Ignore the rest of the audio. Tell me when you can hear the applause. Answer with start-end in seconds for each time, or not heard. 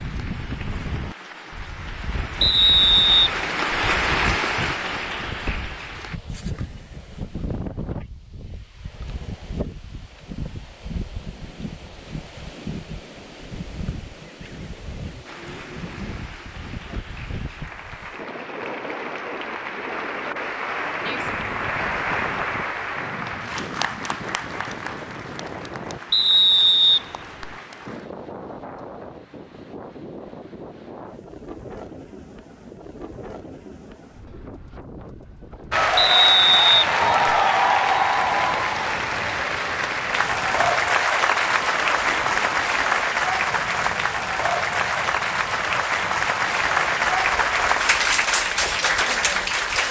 0.0-6.2, 15.2-28.1, 35.7-49.8.